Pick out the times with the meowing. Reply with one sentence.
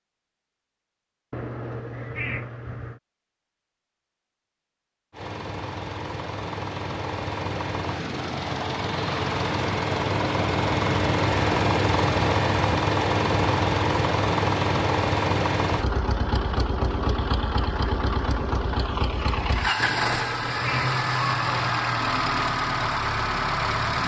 You can hear the meowing from 1.3 to 3.0 s and from 19.8 to 20.9 s.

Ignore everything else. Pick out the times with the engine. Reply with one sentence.
You can hear the engine from 5.1 to 24.0 s.